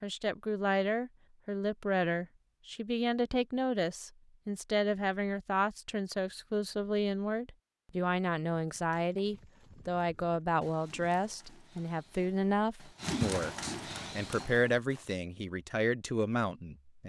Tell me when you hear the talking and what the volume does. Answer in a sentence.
The talking can be heard from 0.0 to 17.0 s, at a steady volume.